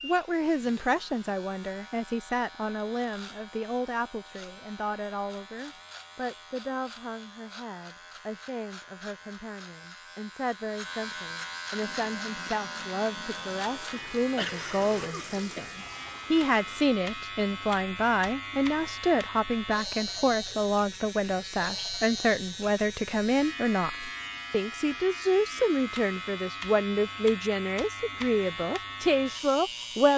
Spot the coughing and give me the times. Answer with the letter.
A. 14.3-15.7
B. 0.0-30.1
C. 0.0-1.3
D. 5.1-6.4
A.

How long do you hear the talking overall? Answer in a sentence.
The talking can be heard for 30 seconds in total.